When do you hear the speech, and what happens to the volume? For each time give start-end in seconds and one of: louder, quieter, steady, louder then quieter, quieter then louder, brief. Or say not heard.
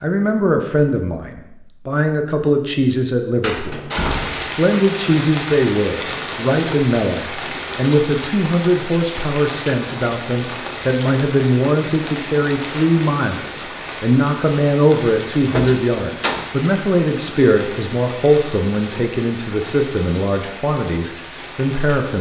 0.0-22.1 steady.